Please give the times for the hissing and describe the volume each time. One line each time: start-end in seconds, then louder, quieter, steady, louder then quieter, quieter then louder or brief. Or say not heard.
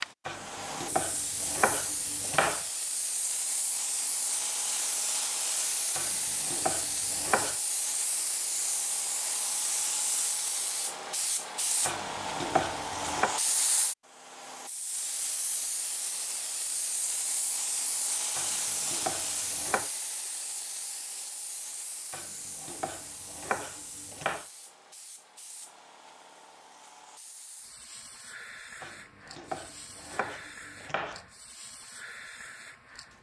0.0-33.1 quieter.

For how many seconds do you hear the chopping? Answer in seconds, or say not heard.
12 s.